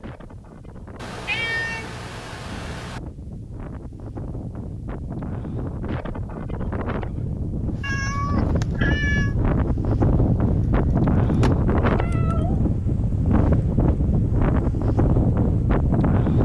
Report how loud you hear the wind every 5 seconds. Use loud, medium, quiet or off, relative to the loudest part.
quiet, medium, loud, loud.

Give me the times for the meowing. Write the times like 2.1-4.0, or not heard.
0.9-3.0, 7.8-9.3, 11.8-12.7.